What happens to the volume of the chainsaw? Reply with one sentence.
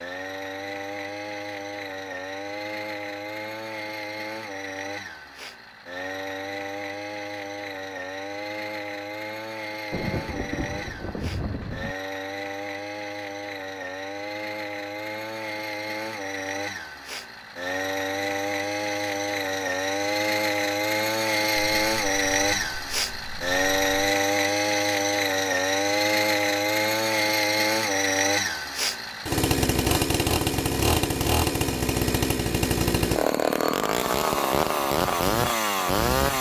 The volume of the chainsaw goes up.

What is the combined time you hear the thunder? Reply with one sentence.
You can hear the thunder for 5 seconds altogether.